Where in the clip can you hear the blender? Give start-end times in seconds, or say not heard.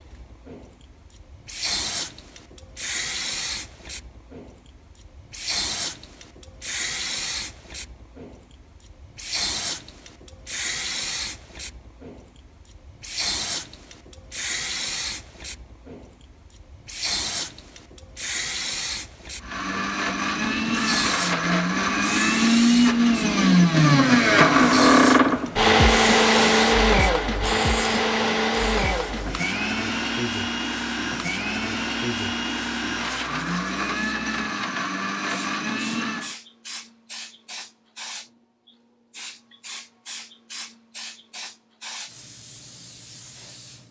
19.4-36.4.